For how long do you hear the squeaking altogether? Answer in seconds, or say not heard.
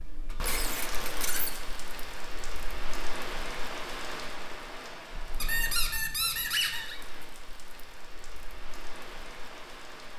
3 s.